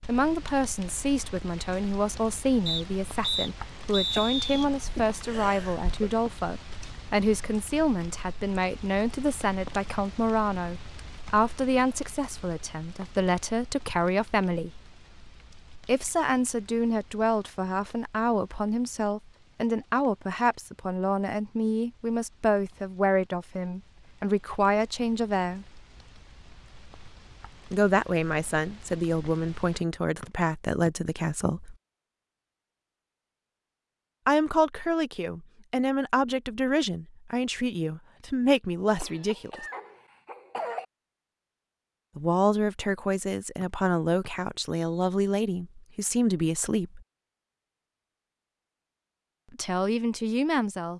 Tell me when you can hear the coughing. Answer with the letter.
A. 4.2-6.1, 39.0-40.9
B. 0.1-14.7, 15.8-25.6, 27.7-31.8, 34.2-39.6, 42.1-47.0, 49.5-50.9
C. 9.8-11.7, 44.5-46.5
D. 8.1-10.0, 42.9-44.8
A.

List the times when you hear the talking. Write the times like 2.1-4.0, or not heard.
0.1-14.7, 15.8-25.6, 27.7-31.8, 34.2-39.6, 42.1-47.0, 49.5-50.9.